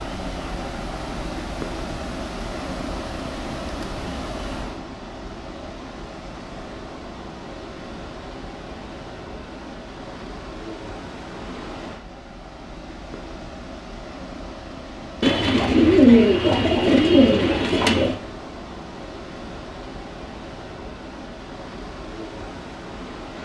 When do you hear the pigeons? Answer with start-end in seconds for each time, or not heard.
15.2-18.1.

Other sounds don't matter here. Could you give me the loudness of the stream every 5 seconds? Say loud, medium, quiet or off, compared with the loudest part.
loud, medium, medium, medium, medium.